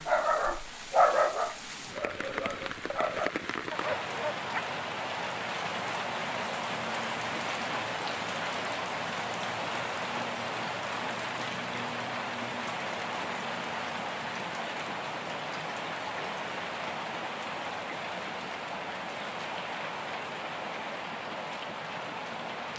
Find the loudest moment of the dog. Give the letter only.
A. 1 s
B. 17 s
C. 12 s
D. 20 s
A.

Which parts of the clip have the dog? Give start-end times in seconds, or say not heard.
0.1-4.6.